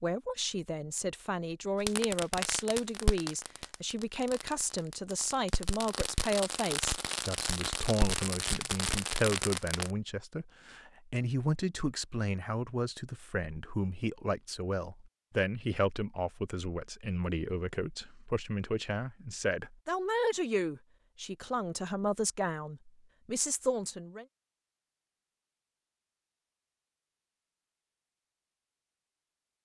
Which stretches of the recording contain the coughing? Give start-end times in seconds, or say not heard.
not heard.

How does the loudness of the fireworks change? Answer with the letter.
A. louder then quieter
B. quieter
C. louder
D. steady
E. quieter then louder
E.